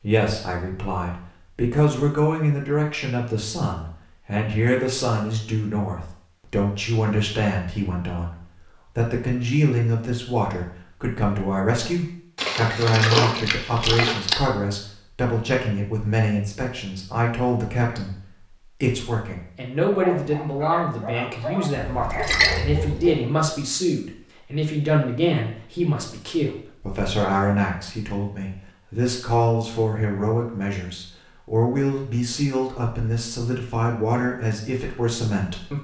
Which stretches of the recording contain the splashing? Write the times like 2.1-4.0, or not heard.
12.3-14.3, 21.8-23.1.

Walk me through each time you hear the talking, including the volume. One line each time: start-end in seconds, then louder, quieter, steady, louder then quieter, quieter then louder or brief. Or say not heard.
0.0-35.7 steady.